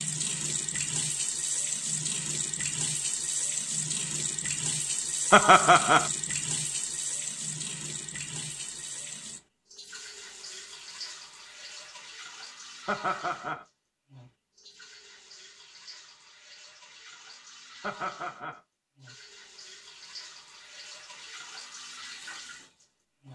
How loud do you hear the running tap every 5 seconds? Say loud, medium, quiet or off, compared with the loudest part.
loud, loud, quiet, quiet, quiet.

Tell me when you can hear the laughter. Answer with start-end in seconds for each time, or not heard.
5.3-6.1, 12.8-13.7, 17.8-18.6.